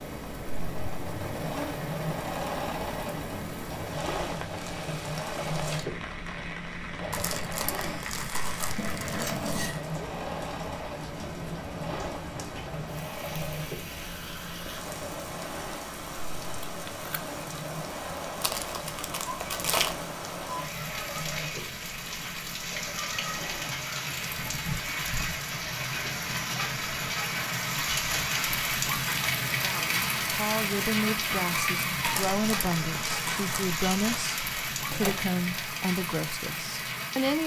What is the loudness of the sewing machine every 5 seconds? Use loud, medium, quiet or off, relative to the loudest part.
loud, loud, loud, medium, medium, medium, off, off.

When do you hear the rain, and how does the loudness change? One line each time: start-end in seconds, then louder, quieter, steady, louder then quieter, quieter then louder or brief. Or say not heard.
0.0-37.4 louder.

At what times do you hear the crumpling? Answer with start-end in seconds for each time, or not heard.
7.1-9.8, 18.4-20.0, 32.0-34.4.